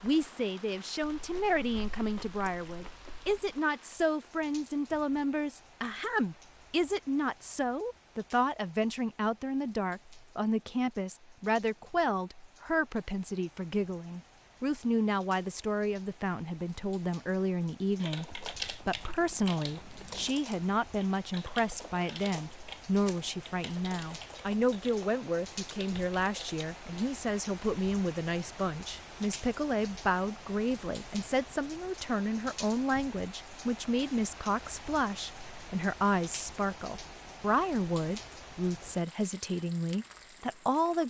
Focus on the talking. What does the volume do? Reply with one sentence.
The volume of the talking stays about the same.